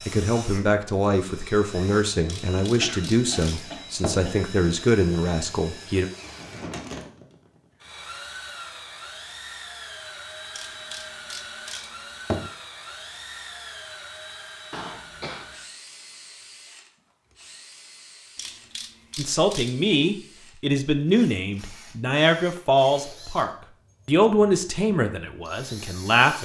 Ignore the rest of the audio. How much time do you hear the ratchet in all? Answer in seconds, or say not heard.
5 s.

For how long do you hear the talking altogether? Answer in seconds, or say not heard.
13 s.